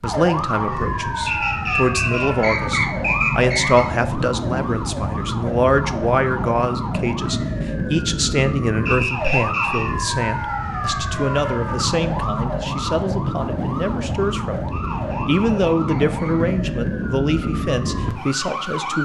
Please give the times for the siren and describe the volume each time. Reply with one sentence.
The siren can be heard from 0.0 to 18.9 s, at a steady volume.